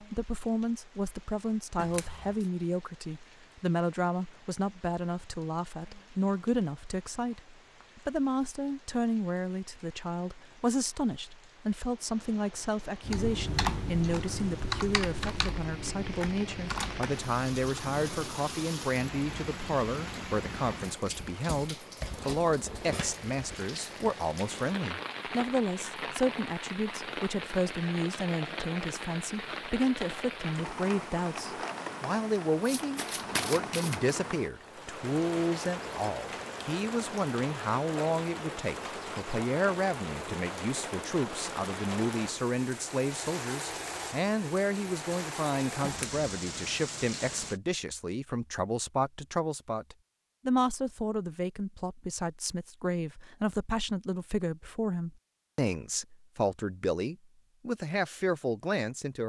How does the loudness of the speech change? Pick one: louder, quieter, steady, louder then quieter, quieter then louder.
steady.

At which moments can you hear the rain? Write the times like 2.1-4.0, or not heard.
0.0-47.6.